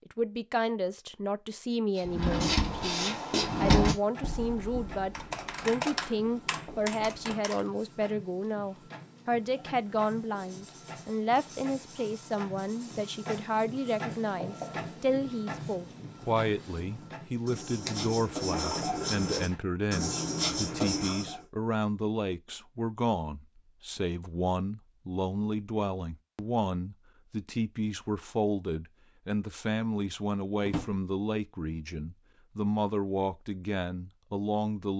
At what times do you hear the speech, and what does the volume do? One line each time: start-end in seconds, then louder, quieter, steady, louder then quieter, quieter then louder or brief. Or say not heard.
0.1-34.9 steady.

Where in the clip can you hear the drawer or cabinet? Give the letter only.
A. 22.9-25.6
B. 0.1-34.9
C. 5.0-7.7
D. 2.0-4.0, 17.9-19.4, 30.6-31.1
D.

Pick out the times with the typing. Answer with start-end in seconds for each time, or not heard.
5.0-7.7.